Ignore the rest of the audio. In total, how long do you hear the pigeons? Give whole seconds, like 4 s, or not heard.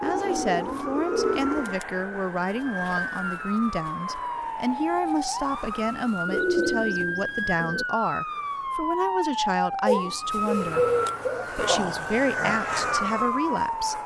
5 s.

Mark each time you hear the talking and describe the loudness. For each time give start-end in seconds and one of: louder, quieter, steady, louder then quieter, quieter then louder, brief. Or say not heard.
0.0-10.8 steady
11.5-14.0 brief.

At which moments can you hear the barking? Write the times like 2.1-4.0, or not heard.
not heard.